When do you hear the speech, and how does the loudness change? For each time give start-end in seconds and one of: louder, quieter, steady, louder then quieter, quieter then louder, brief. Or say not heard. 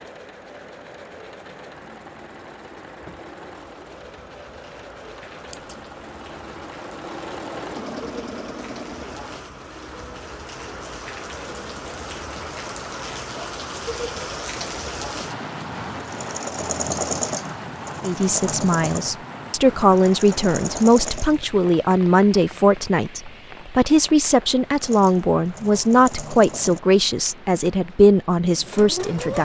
18.0-29.3 steady.